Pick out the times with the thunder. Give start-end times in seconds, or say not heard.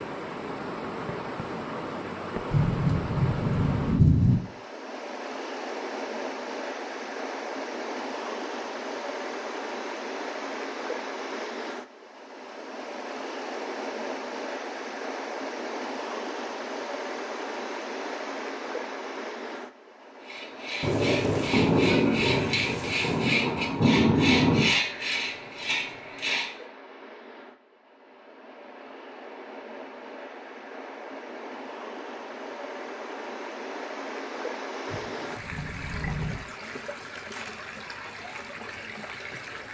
2.5-4.4, 20.8-24.8, 34.9-36.4.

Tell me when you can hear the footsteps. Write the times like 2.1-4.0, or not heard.
not heard.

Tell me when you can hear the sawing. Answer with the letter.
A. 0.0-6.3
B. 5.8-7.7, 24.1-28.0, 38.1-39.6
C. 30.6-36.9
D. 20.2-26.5
D.